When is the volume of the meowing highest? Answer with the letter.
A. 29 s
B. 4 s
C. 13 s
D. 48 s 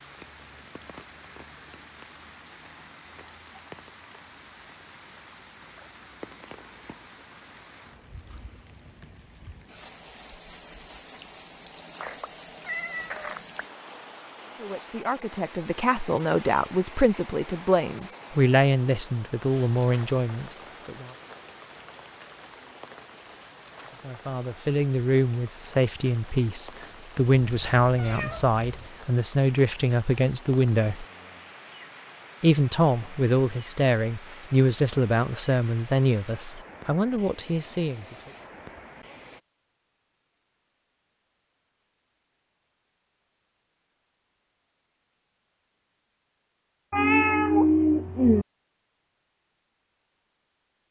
D.